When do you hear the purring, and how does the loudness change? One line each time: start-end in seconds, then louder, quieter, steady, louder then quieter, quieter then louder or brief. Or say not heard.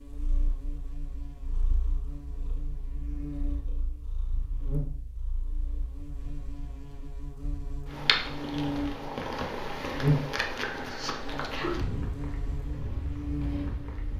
0.1-14.1 louder.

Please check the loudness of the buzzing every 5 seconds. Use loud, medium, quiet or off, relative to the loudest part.
medium, medium, loud.